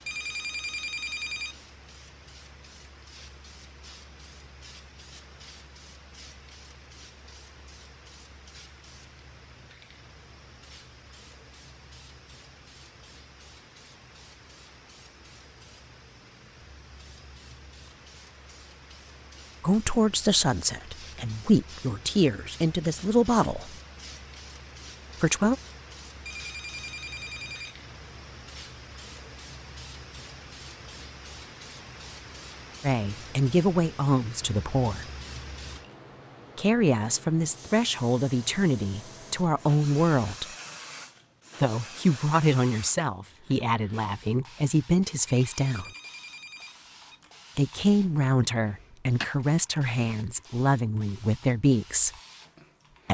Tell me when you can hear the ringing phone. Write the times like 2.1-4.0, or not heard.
0.1-1.6, 26.2-27.8, 45.2-47.2.